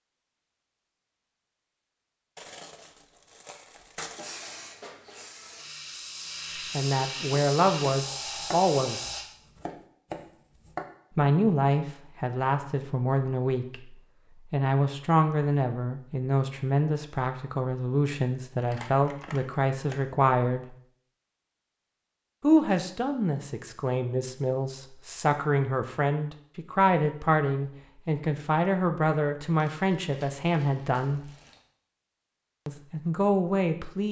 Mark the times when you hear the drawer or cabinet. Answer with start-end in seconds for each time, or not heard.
not heard.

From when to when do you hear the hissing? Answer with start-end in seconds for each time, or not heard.
4.0-9.2.